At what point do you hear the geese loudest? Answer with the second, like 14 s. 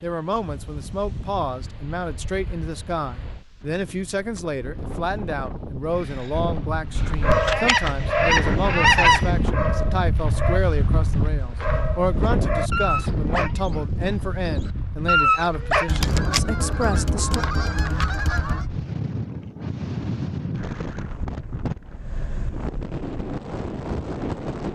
9 s.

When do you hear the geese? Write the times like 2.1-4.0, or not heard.
7.0-9.4, 15.8-18.6.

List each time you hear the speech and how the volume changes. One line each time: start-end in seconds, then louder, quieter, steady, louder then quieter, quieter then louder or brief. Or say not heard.
0.0-17.4 steady.